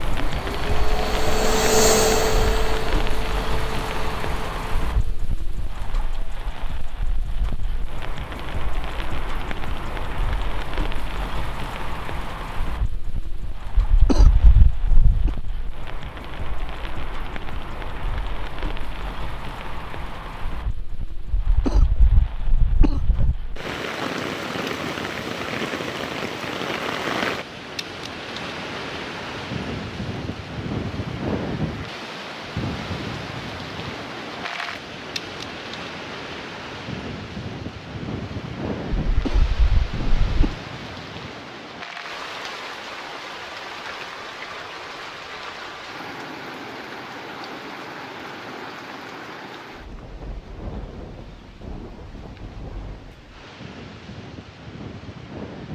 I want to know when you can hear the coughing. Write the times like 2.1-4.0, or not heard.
13.8-15.3, 21.4-23.4, 39.0-40.5.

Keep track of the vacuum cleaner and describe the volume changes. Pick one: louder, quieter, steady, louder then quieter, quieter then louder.
louder then quieter.